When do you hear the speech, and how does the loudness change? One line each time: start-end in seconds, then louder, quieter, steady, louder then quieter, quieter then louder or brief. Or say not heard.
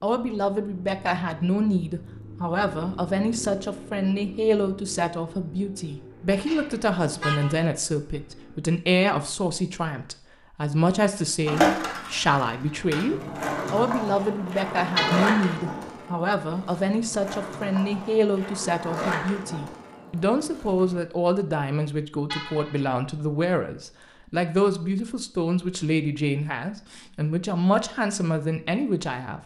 0.0-29.4 steady.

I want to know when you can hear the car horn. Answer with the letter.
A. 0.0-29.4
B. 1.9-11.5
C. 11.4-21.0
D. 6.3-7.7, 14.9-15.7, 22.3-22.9
D.